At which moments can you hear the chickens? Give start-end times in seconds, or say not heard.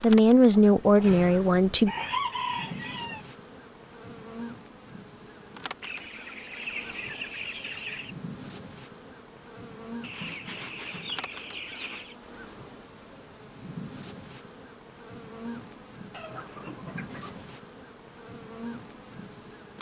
0.5-3.2, 5.8-8.2, 10.0-12.2, 16.1-17.6.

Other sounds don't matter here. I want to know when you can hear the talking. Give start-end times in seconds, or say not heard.
0.0-1.9.